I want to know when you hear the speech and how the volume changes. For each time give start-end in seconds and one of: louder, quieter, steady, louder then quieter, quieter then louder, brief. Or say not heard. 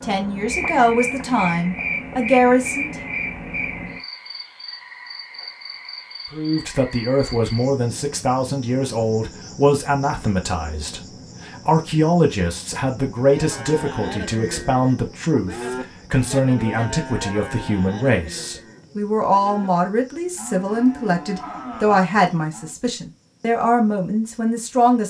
0.0-2.9 brief
6.3-25.0 steady.